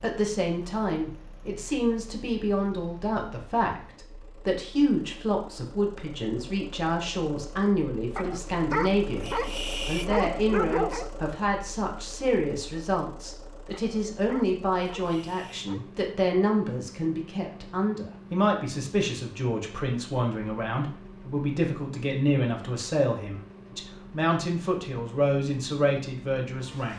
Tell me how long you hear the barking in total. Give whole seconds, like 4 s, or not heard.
5 s.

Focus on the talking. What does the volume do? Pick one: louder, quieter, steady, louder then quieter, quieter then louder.
steady.